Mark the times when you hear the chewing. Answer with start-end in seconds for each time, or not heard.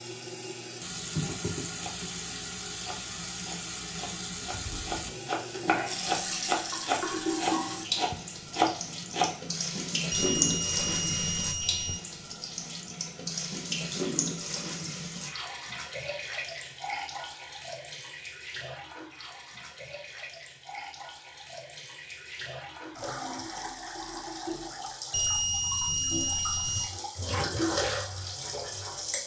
not heard.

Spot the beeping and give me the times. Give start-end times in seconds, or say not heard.
10.1-12.0, 25.1-26.9.